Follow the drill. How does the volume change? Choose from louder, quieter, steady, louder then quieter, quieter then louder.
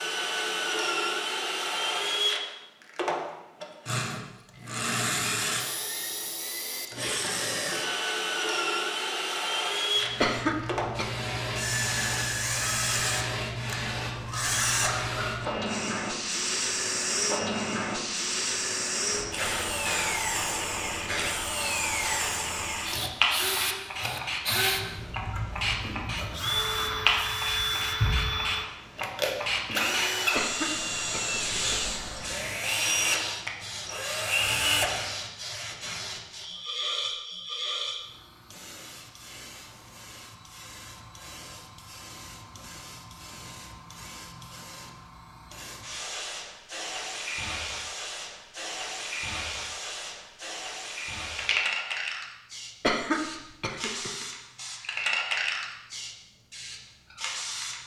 steady.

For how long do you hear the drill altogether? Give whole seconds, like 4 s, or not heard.
35 s.